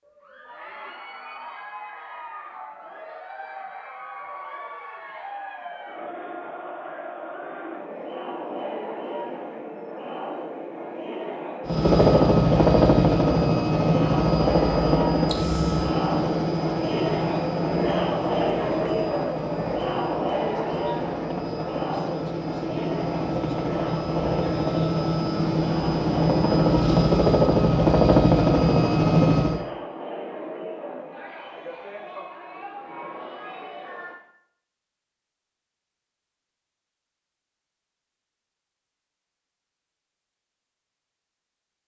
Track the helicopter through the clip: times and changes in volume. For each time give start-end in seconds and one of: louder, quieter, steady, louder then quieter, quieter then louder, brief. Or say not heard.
11.7-29.6 quieter then louder.